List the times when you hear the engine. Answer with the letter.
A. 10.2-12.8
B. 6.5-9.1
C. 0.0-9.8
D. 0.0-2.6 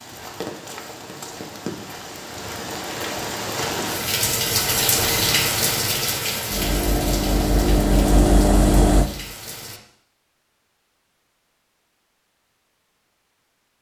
B.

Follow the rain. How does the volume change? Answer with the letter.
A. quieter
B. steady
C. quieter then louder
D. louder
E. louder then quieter
E.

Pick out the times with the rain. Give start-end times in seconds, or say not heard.
0.0-9.8.